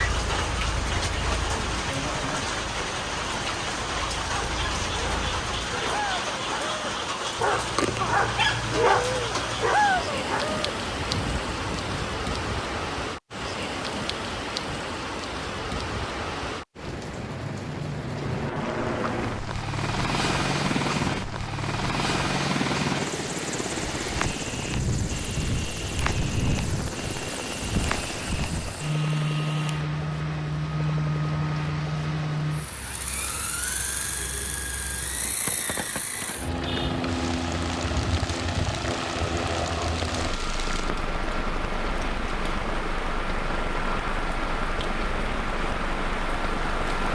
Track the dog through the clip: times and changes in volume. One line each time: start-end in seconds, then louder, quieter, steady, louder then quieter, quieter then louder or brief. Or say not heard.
4.2-12.2 louder then quieter.